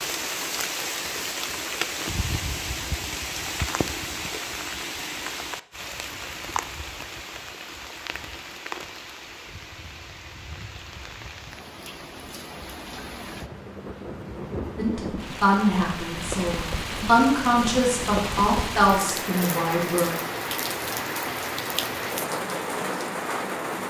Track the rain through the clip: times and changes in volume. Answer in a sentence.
The rain can be heard from 0.0 to 23.8 s, getting quieter then louder.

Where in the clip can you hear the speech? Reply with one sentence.
The speech can be heard from 14.8 to 20.1 s.